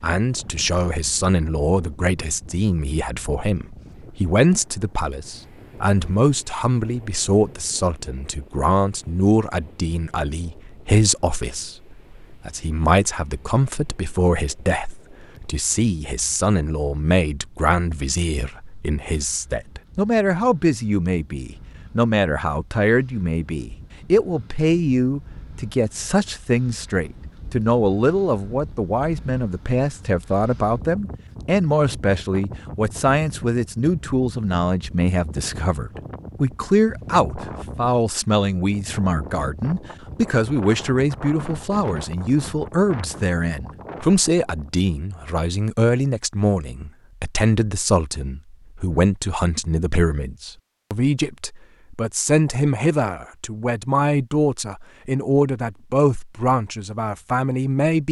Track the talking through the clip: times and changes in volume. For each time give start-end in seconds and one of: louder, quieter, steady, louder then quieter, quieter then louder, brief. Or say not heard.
0.0-58.0 steady.